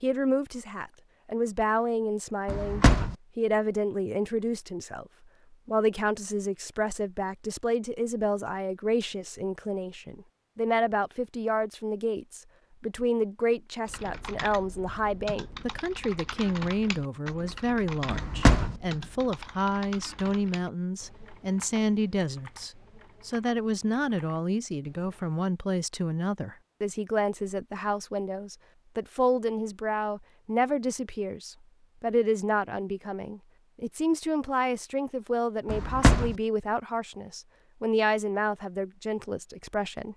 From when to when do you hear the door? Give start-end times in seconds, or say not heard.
2.5-3.1, 18.1-18.8, 35.6-36.4.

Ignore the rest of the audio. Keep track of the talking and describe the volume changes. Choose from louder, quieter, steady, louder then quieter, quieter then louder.
steady.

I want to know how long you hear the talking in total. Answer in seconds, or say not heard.
40 s.